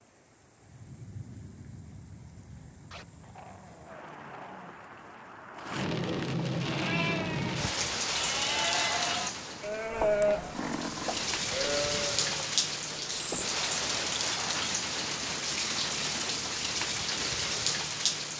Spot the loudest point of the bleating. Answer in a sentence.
The volume of the bleating peaks at 10 seconds.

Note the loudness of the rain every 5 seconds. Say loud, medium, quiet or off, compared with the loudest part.
quiet, loud, loud, loud.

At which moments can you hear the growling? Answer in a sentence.
You can hear the growling from 2.9 to 4.8 s and from 13.9 to 14.6 s.